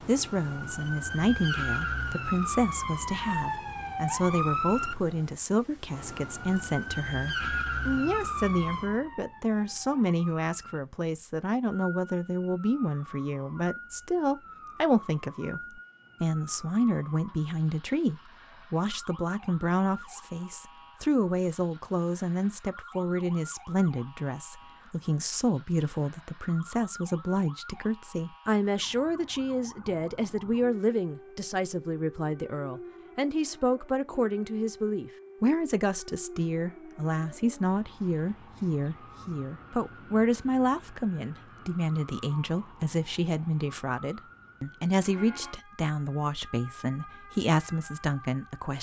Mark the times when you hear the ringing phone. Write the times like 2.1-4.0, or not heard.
not heard.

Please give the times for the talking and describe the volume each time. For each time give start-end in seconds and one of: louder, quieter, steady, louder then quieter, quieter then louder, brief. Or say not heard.
0.0-48.7 steady.